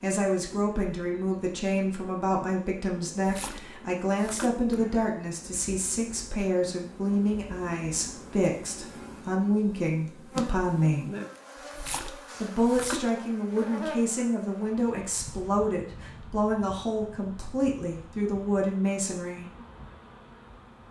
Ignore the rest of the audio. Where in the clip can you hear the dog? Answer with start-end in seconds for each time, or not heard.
not heard.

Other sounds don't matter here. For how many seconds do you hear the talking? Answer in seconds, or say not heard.
18 s.